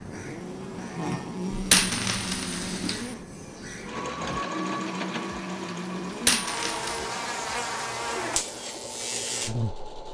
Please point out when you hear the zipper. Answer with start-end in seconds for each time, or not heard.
not heard.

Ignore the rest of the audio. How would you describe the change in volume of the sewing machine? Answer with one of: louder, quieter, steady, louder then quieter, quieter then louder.
louder then quieter.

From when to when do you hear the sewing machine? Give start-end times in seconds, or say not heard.
0.0-10.0.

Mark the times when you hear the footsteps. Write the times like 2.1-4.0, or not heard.
not heard.